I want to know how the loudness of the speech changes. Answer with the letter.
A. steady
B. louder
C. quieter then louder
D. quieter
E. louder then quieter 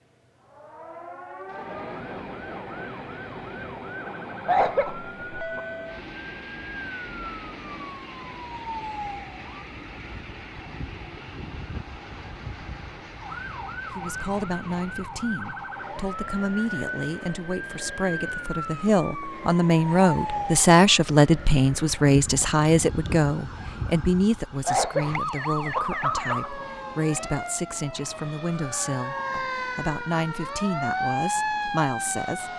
E.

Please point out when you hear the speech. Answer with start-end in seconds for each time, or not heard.
13.9-32.5.